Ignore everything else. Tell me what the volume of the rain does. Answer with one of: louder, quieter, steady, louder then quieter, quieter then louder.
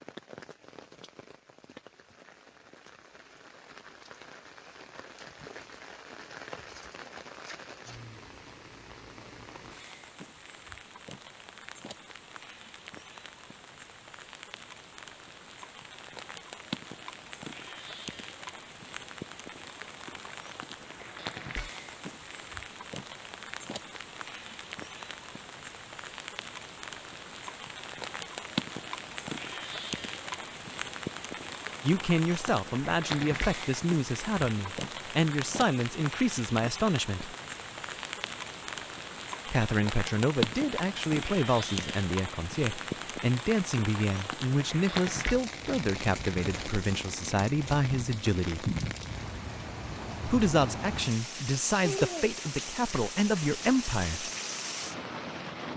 louder.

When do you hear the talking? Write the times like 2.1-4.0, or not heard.
31.8-37.4, 39.5-48.8, 50.2-54.3.